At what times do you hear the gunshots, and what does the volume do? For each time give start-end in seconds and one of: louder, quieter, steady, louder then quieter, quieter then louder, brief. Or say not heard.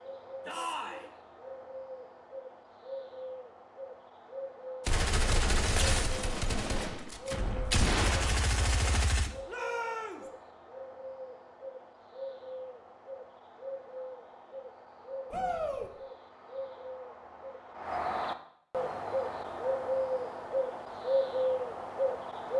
4.8-9.3 quieter then louder.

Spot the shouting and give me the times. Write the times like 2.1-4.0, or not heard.
0.5-1.1, 9.4-10.2, 15.3-15.9.